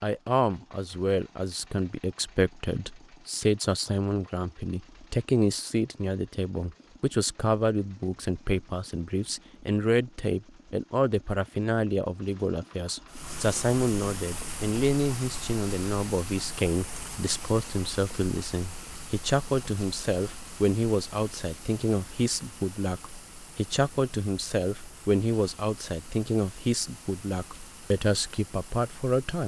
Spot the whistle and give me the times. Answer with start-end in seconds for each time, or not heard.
not heard.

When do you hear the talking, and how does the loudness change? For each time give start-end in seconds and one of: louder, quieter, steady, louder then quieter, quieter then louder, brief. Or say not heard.
0.0-29.4 steady.